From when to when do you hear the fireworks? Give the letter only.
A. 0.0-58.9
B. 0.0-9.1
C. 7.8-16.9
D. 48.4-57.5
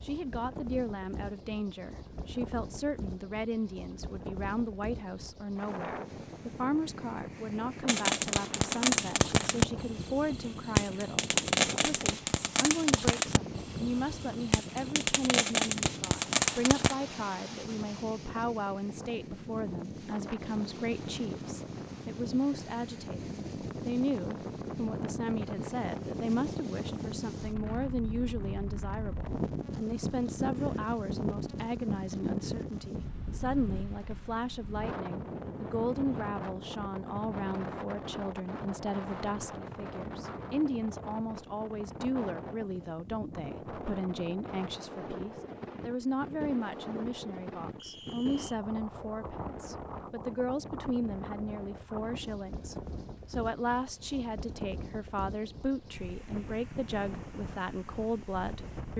C.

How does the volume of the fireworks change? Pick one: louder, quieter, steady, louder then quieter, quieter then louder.
quieter then louder.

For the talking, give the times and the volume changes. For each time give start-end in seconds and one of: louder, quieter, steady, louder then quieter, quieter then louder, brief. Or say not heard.
0.0-58.9 steady.